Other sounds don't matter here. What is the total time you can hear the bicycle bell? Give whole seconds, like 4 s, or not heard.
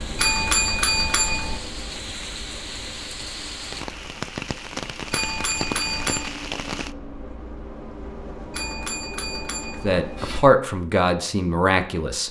5 s.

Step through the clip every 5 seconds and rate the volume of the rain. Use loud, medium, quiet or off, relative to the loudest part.
loud, loud, off.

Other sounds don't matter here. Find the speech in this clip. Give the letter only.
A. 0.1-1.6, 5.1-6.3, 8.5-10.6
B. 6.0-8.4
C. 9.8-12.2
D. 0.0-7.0
C.